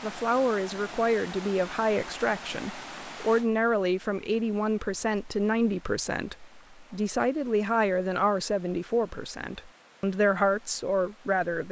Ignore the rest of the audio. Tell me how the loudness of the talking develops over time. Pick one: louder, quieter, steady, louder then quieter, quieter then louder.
steady.